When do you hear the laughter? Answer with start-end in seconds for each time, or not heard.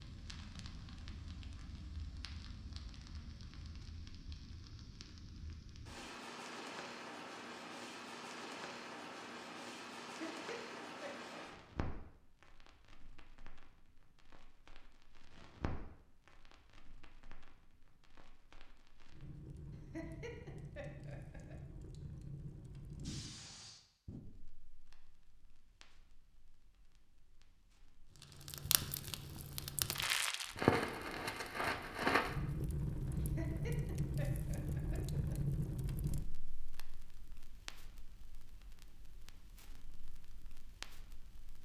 10.2-11.3, 19.9-21.6, 33.1-35.4.